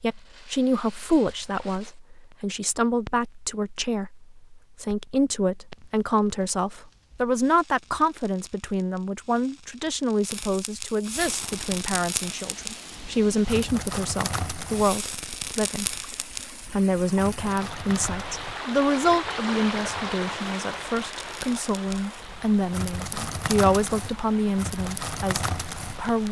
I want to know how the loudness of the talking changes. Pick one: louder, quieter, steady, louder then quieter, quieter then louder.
steady.